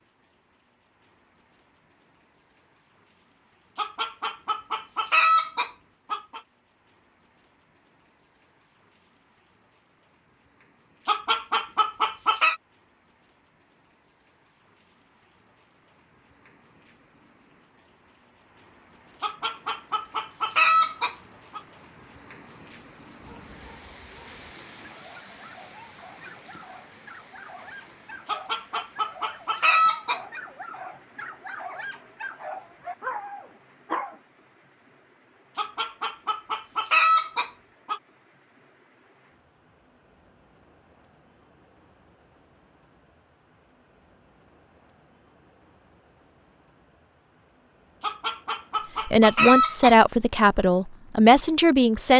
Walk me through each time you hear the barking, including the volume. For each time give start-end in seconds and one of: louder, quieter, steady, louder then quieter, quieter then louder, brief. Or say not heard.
23.2-34.2 louder.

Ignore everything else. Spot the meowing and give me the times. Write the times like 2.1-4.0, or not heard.
not heard.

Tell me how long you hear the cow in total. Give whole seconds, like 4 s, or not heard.
not heard.